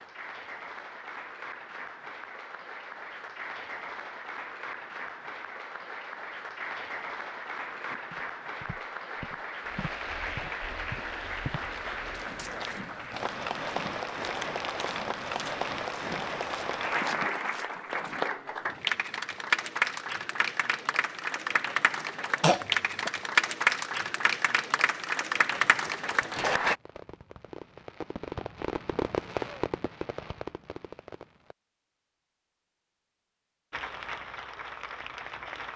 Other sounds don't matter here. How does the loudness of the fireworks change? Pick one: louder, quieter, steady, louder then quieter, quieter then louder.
louder then quieter.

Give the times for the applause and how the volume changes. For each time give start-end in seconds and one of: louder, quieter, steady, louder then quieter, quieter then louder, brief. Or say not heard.
0.0-26.8 louder
33.7-35.7 brief.